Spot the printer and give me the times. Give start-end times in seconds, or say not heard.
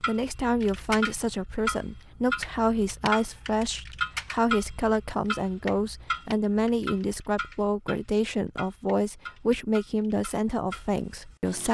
not heard.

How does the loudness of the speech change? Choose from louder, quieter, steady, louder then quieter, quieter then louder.
steady.